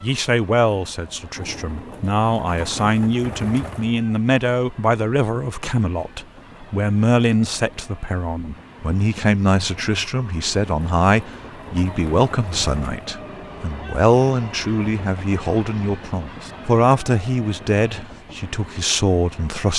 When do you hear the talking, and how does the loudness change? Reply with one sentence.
The talking can be heard from 0.0 to 19.7 s, at a steady volume.